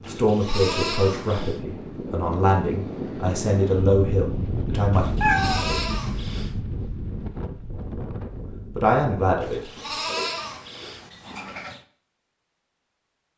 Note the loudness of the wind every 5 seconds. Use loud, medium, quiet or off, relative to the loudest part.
loud, loud, off.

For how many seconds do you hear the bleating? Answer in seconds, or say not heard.
6 s.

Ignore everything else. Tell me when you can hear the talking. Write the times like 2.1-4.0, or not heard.
0.1-5.1, 8.7-9.7.